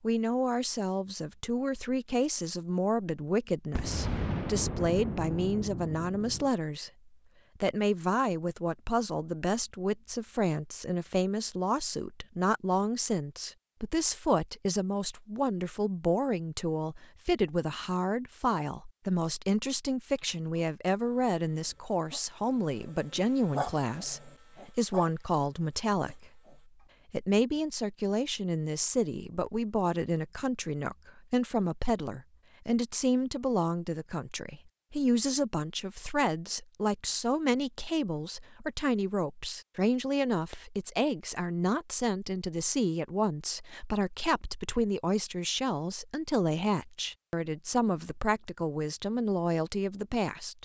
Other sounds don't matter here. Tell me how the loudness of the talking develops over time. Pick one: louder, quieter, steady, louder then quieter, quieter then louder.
steady.